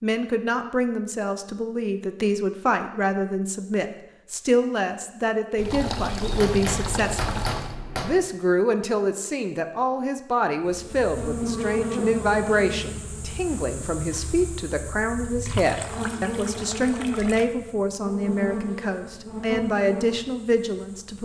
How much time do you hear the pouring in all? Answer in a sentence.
You can hear the pouring for 4 seconds altogether.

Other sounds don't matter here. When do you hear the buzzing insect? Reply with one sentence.
You can hear the buzzing insect from 10.7 to 21.2 s.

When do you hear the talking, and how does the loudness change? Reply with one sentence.
The talking can be heard from 0.0 to 7.4 s, at a steady volume; and from 8.0 to 21.2 s, at a steady volume.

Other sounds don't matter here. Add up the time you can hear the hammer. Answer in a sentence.
You can hear the hammer for 2 seconds altogether.